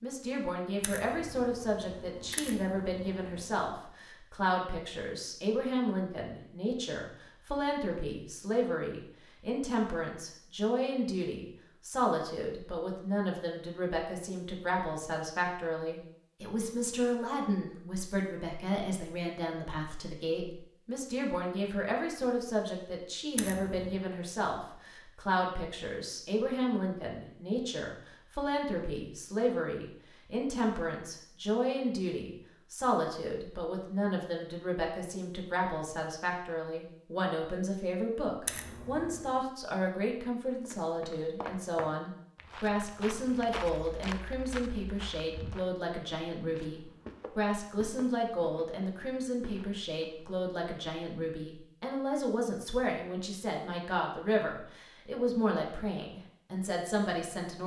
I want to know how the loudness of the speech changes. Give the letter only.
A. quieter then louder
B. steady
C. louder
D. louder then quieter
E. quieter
B.